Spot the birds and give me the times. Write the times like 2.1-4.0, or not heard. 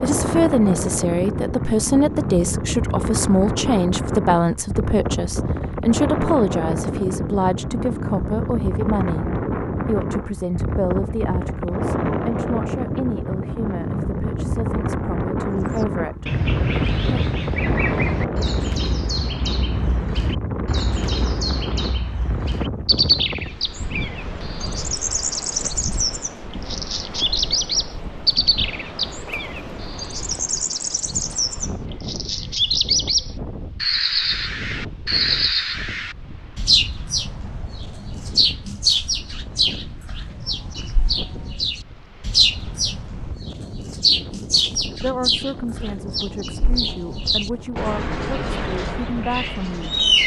15.6-50.2.